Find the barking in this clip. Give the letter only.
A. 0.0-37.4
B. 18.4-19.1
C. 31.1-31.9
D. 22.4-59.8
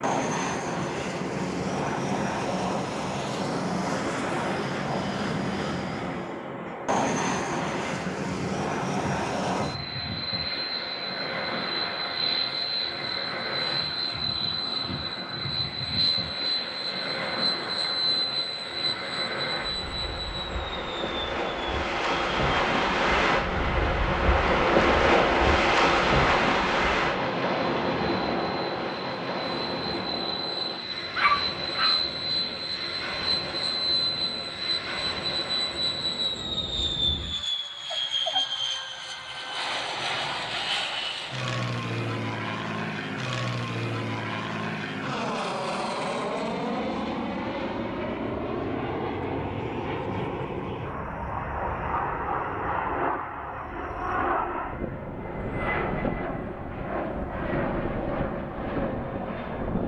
C.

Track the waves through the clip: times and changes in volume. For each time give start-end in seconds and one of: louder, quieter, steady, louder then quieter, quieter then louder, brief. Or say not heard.
0.0-37.4 louder then quieter.